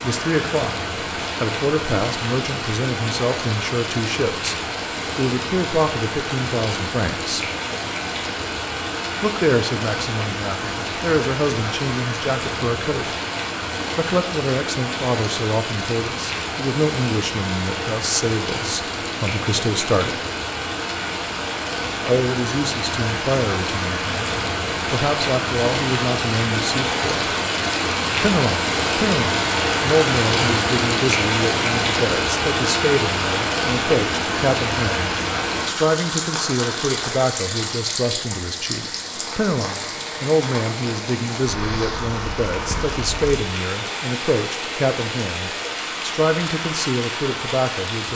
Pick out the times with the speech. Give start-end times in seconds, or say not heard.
0.0-7.5, 9.2-13.2, 13.9-20.2, 22.1-27.3, 28.2-48.1.